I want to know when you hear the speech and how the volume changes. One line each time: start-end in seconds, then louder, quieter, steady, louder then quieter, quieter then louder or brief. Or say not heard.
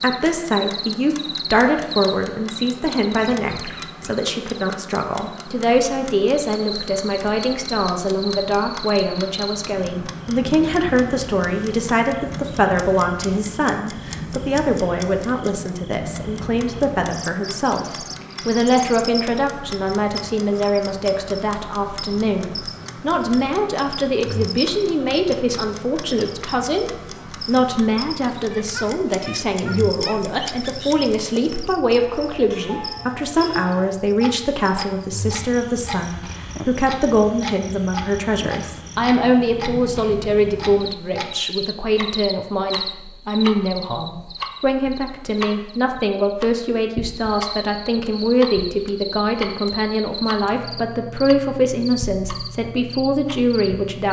0.0-17.9 steady
18.4-54.0 steady.